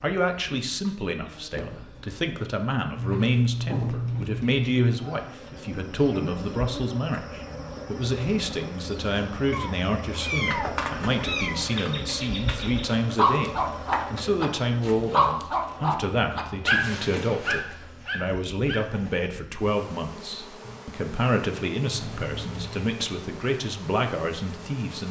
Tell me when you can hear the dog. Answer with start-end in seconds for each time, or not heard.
13.2-19.2.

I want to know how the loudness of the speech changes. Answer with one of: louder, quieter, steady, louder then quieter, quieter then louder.
steady.